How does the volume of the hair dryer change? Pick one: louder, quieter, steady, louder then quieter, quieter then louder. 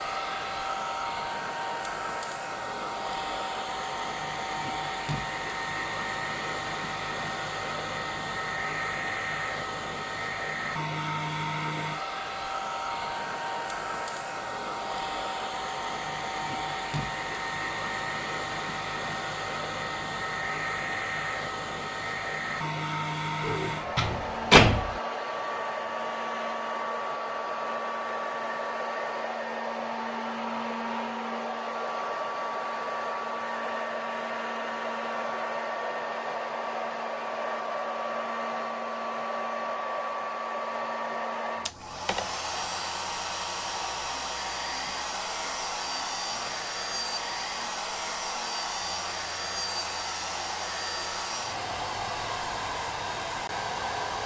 steady.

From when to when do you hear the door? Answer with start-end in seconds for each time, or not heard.
23.4-25.0.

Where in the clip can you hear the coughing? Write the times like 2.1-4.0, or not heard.
not heard.